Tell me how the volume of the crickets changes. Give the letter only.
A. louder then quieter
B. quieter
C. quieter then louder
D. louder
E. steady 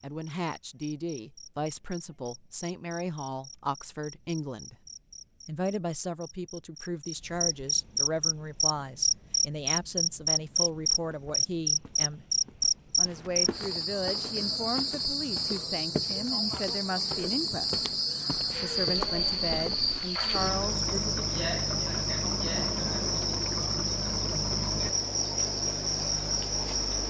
D.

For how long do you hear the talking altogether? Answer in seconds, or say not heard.
19 s.